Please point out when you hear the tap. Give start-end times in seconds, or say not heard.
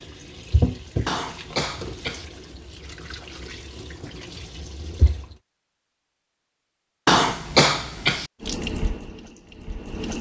0.0-5.3, 8.4-10.1.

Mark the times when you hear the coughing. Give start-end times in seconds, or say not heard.
1.1-2.2, 7.0-8.3.